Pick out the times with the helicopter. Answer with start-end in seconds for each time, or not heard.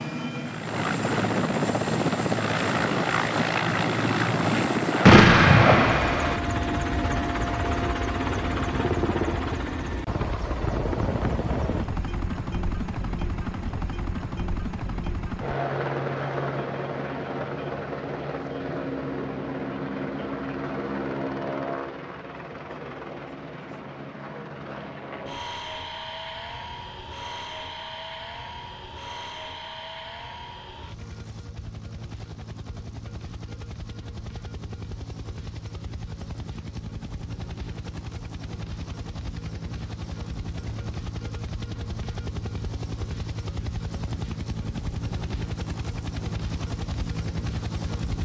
0.0-48.2.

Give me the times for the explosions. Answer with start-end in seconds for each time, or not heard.
5.0-6.4.